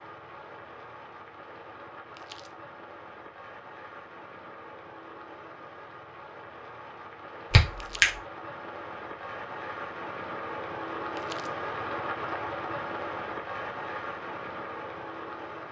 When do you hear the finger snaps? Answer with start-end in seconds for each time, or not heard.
7.5-8.1.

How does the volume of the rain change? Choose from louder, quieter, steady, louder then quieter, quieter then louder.
louder.